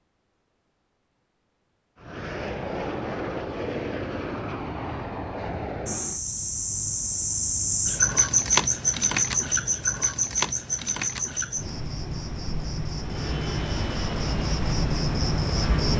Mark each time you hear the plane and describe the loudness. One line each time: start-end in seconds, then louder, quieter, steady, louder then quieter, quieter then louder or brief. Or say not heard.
1.9-6.2 steady
13.0-15.9 brief.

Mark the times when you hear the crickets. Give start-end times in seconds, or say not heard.
5.8-15.9.